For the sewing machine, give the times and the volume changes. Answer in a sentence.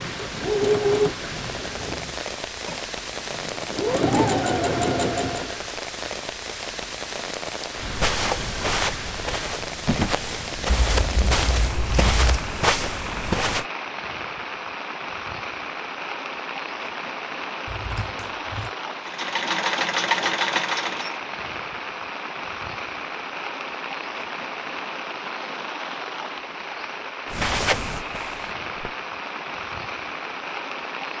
The sewing machine can be heard from 0.0 to 5.6 s, getting quieter then louder; and briefly from 19.1 to 21.2 s.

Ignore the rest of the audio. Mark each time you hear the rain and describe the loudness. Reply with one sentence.
The rain can be heard from 0.0 to 31.1 s, at a steady volume.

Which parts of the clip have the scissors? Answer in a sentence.
You can hear the scissors from 10.7 to 12.4 s and from 17.6 to 18.7 s.